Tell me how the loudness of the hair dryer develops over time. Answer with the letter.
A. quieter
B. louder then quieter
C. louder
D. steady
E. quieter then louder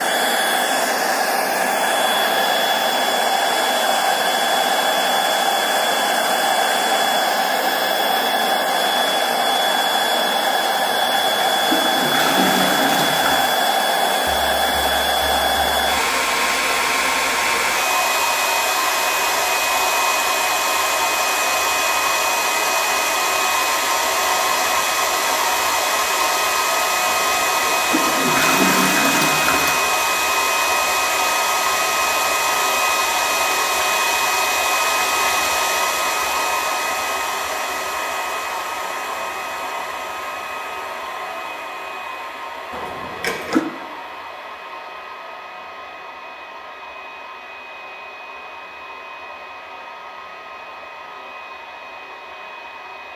A.